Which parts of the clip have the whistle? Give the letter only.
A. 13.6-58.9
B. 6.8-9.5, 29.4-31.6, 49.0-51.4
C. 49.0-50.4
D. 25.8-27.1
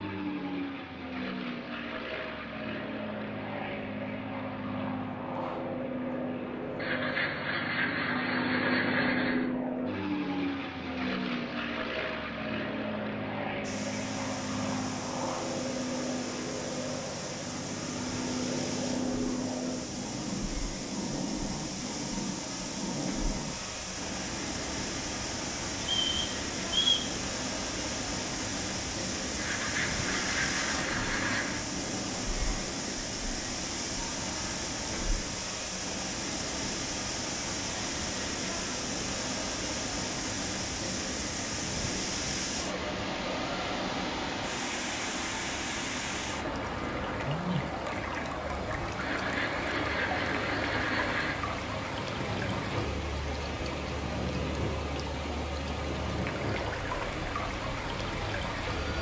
D.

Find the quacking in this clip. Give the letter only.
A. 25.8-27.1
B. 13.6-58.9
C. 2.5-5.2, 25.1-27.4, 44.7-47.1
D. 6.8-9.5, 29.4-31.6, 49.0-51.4
D.